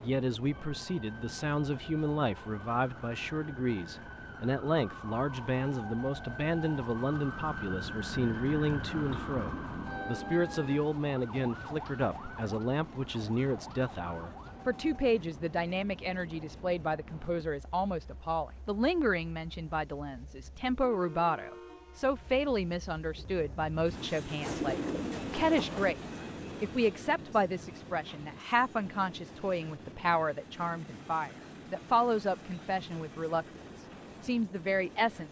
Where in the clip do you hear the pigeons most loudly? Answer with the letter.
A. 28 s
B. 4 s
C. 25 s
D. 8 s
C.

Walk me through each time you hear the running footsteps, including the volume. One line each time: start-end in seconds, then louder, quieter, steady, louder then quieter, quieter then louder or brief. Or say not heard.
not heard.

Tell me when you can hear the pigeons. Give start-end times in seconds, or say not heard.
24.4-26.0.